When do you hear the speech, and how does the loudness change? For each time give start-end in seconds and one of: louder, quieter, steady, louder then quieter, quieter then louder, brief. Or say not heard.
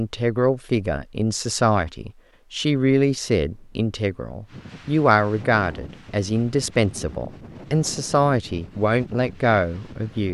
0.0-10.2 steady.